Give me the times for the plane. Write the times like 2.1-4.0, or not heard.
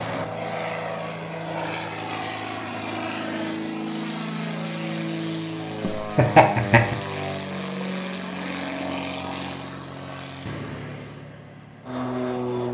0.0-12.7.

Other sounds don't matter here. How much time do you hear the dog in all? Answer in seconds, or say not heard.
not heard.